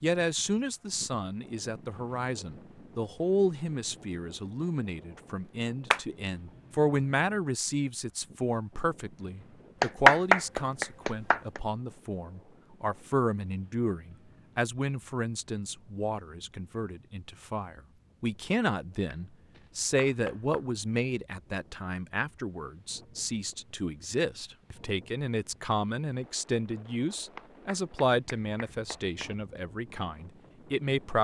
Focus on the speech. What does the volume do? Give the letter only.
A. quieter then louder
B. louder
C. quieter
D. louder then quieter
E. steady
E.